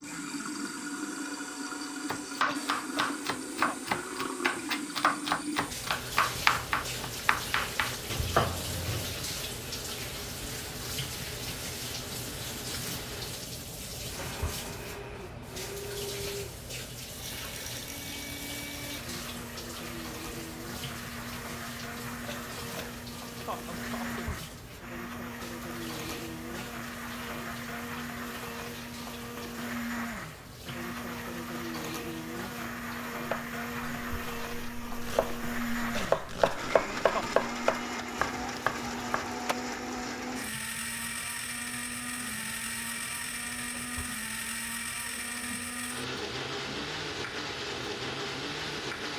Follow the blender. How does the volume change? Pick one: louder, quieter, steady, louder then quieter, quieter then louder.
louder.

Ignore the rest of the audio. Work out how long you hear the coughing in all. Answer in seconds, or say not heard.
5 s.